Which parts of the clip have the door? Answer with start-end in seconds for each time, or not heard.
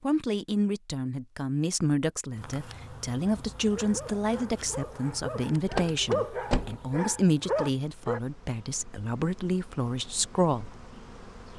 5.7-7.2.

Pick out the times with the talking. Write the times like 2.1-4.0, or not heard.
0.0-10.8.